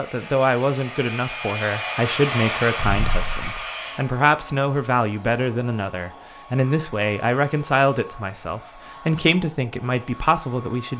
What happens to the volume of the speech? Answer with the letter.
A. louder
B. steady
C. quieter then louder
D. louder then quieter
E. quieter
B.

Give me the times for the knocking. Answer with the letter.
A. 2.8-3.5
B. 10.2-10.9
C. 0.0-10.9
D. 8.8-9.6
A.